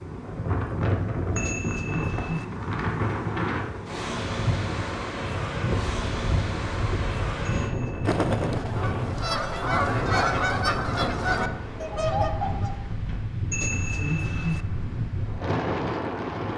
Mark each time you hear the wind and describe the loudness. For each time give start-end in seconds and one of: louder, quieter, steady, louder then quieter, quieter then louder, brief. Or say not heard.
0.0-16.5 steady.